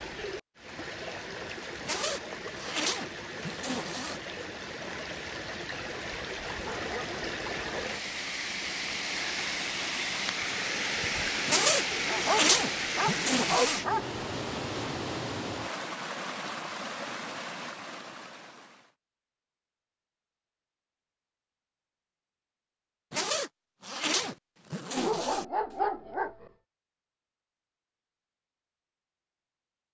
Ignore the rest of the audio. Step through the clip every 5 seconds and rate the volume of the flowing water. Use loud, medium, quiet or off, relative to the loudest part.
medium, loud, loud, medium, off, off.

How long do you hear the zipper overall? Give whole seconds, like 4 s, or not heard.
7 s.